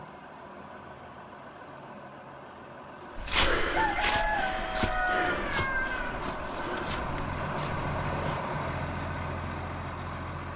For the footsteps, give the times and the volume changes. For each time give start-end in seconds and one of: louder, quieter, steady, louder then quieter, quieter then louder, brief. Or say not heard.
3.1-8.4 quieter.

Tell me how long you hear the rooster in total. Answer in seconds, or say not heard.
3 s.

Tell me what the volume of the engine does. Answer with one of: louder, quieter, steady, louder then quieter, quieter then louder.
louder.